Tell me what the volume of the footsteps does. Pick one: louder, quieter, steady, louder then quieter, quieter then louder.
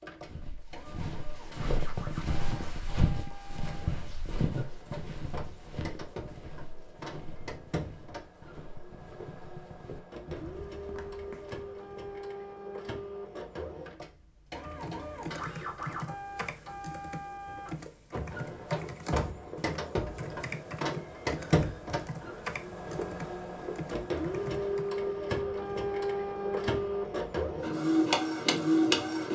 quieter.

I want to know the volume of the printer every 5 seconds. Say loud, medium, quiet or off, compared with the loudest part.
quiet, quiet, quiet, medium, medium, loud.